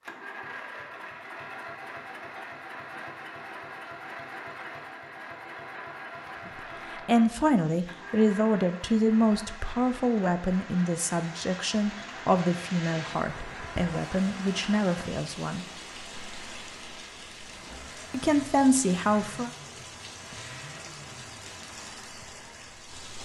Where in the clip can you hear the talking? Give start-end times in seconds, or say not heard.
7.0-15.7, 18.1-19.5.